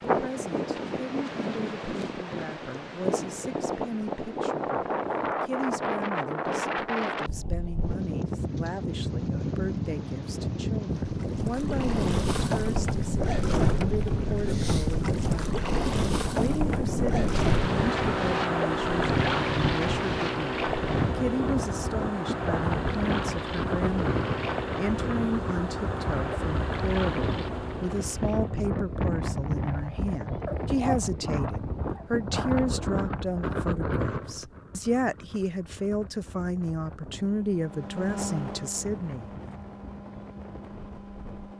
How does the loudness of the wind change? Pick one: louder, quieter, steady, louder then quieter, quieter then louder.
quieter.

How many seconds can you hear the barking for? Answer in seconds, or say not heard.
2 s.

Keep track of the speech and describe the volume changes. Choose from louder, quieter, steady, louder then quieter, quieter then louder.
louder.